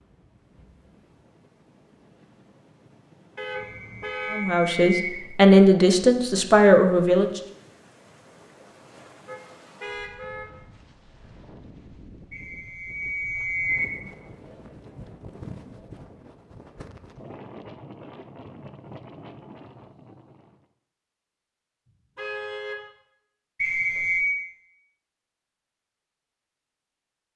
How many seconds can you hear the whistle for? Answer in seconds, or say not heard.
4 s.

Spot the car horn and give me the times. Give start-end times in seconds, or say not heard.
3.4-4.5, 9.2-10.5, 22.1-22.8.